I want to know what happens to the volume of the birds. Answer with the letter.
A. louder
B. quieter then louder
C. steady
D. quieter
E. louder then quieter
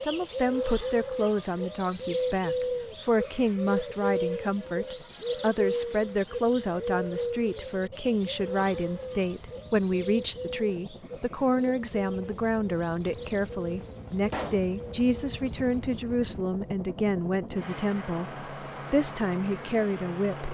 D.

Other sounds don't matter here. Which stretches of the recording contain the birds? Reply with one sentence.
You can hear the birds from 0.0 to 15.8 s.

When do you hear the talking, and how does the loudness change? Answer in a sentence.
The talking can be heard from 0.0 to 20.4 s, at a steady volume.